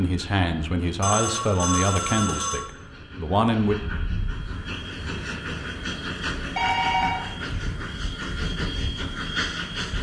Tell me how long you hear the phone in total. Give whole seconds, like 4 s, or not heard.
2 s.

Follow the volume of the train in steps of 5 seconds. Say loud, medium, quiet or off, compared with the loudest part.
medium, loud.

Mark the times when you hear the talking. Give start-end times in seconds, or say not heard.
0.0-3.8.